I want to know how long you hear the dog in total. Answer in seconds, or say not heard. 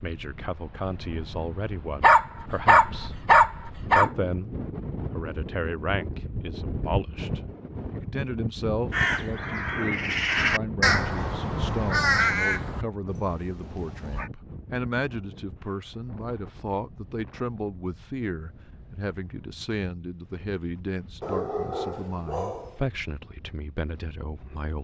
4 s.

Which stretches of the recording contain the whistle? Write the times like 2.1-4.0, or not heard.
not heard.